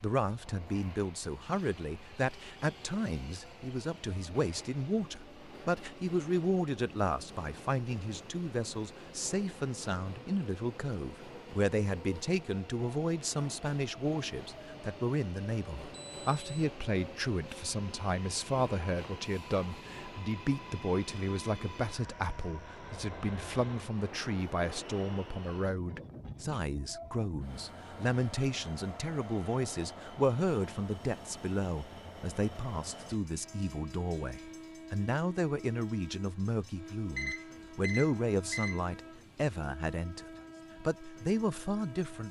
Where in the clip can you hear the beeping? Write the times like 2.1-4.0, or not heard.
15.9-16.4, 37.1-38.8.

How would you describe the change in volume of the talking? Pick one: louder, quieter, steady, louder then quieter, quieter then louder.
steady.